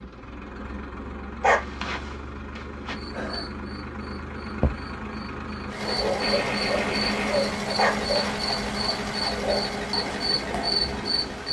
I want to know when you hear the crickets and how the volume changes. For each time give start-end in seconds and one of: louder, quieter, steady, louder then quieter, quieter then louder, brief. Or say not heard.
2.9-11.4 louder.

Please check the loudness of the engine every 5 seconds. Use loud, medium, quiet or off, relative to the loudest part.
medium, loud, loud.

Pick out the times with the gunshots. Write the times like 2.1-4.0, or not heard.
6.2-7.5.